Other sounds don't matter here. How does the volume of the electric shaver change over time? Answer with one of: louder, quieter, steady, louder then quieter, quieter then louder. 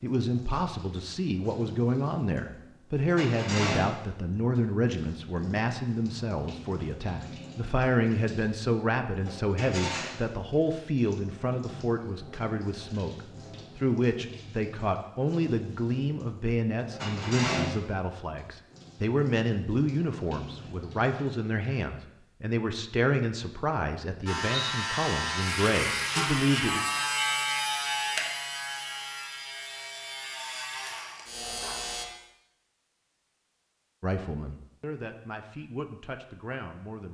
quieter.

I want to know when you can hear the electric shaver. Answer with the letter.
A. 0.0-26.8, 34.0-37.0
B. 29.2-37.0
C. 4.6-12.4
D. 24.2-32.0
D.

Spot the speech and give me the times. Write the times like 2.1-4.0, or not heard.
0.0-26.8, 34.0-37.0.